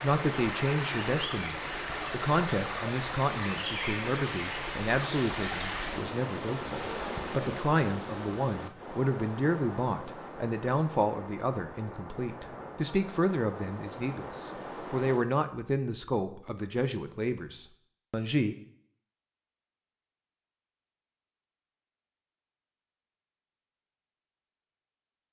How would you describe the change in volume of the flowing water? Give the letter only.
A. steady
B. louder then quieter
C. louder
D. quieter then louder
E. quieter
E.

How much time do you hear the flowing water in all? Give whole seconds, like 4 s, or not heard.
15 s.